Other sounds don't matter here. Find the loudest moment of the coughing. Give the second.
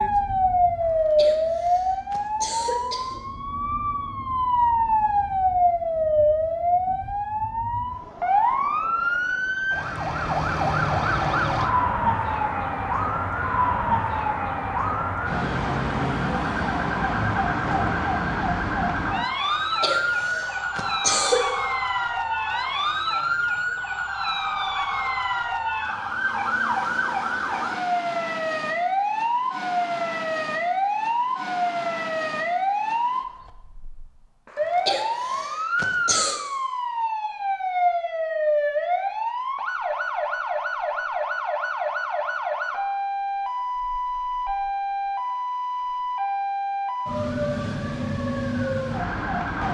21 s.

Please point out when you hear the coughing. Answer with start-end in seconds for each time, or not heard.
0.8-3.2, 19.4-21.4, 34.5-36.4.